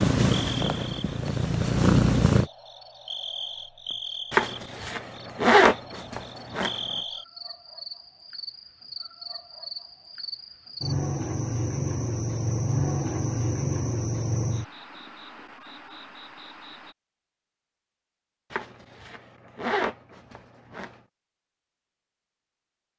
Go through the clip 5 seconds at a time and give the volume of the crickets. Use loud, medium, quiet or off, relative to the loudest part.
medium, medium, loud, quiet, off.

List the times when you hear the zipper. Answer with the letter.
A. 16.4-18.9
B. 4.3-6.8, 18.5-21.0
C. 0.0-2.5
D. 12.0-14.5
B.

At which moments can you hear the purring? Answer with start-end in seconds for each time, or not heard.
0.0-2.5.